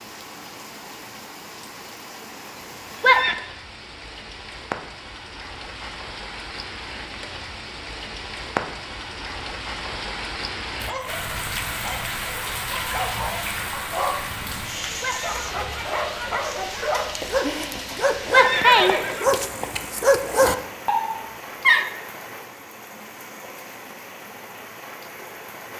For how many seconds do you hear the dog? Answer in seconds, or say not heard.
11 s.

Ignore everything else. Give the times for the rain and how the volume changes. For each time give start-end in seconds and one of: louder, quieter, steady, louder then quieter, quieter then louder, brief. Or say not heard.
0.0-25.7 louder then quieter.